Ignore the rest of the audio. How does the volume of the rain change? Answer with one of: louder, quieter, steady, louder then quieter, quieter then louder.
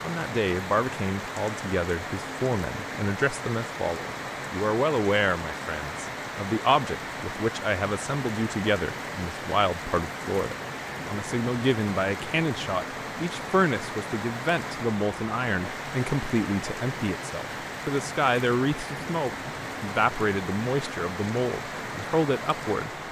steady.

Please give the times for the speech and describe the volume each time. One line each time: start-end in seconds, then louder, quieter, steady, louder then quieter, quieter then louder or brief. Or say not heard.
0.0-22.9 steady.